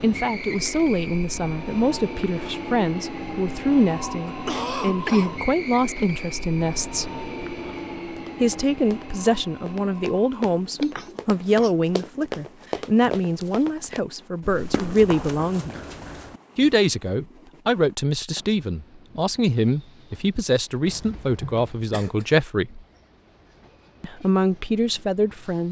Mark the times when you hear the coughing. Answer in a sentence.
You can hear the coughing from 4.2 to 5.3 s, from 10.8 to 11.7 s and from 20.9 to 22.2 s.